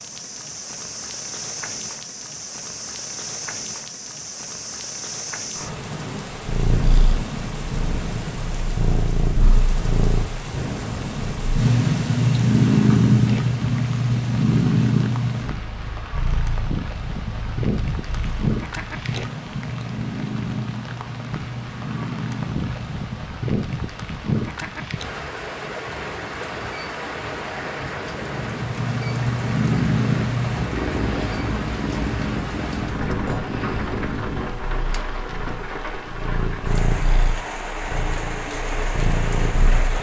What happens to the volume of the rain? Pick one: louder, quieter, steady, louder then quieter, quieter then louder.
steady.